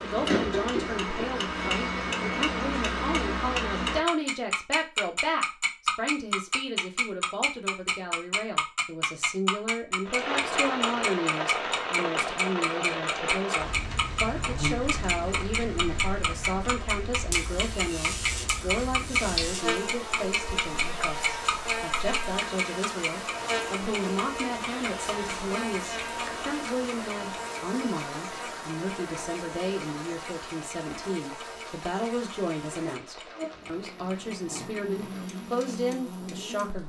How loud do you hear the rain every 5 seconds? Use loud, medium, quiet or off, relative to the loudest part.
off, off, loud, medium, medium, medium, quiet, quiet.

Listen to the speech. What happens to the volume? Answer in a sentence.
The loudness of the speech stays about the same.